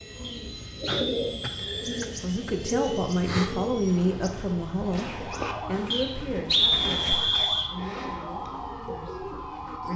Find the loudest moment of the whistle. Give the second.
7 s.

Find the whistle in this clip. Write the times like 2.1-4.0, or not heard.
0.2-2.0, 5.9-7.7.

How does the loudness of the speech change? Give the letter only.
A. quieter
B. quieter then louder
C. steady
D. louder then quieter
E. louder
A.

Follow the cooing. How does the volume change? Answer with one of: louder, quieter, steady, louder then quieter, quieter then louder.
quieter.